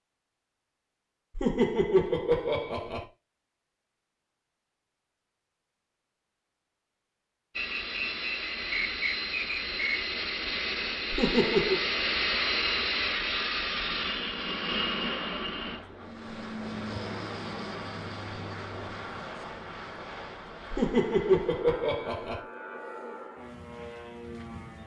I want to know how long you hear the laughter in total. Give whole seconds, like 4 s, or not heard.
4 s.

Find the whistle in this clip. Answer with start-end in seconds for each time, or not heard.
7.5-10.0.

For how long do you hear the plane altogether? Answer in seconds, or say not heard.
17 s.